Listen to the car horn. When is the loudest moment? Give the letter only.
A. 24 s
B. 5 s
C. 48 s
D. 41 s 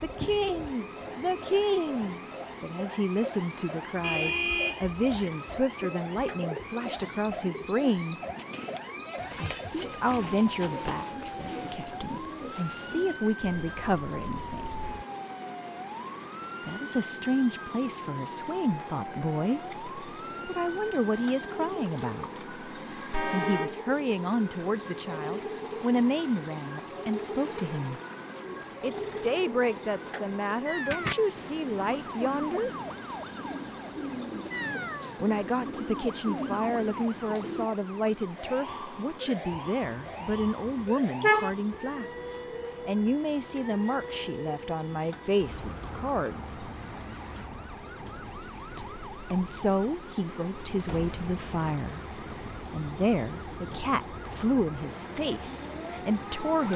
D.